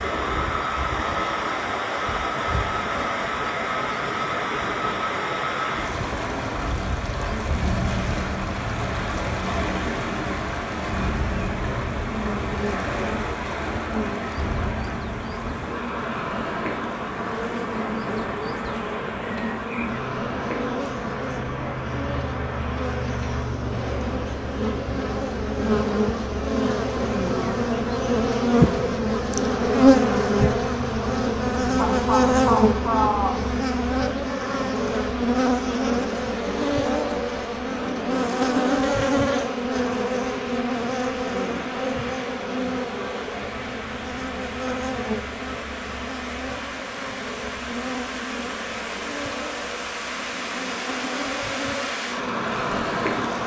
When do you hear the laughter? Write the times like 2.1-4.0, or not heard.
31.8-33.4.